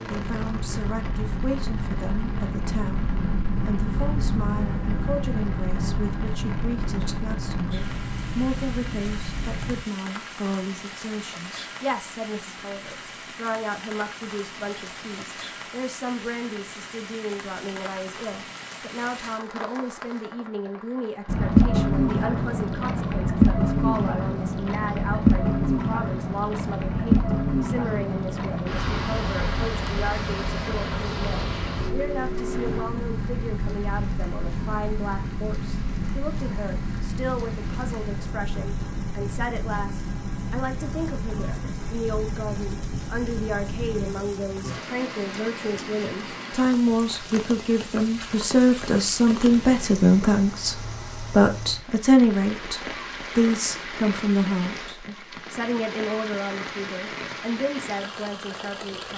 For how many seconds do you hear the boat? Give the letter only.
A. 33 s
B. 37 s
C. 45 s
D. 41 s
A.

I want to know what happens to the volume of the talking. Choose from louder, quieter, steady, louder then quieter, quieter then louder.
louder.